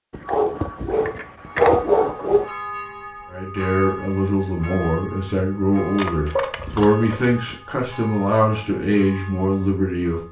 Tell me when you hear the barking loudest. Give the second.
2 s.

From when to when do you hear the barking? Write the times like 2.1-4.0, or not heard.
0.1-2.5, 6.3-7.6.